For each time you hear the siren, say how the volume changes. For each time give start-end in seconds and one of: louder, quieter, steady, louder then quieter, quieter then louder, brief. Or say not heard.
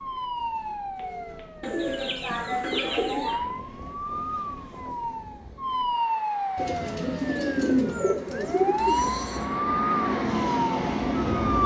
0.0-11.6 louder.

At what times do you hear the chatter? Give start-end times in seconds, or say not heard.
not heard.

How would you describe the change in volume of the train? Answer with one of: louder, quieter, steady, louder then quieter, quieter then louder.
louder.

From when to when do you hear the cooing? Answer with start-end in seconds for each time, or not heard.
1.6-3.4, 6.5-9.1.